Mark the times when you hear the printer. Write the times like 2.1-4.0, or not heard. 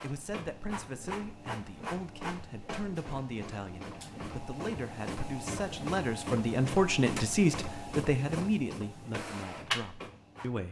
0.0-10.6.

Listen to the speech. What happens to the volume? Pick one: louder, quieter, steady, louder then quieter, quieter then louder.
louder then quieter.